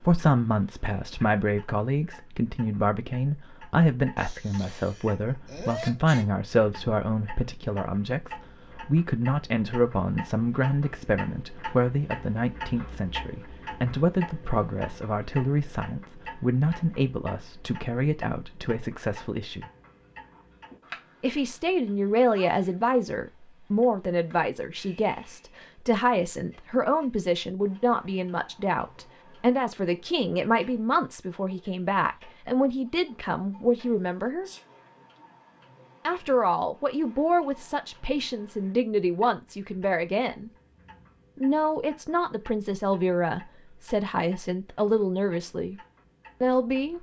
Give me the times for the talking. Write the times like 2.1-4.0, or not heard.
0.0-19.7, 21.2-34.5, 36.0-40.5, 41.4-45.8, 46.4-46.9.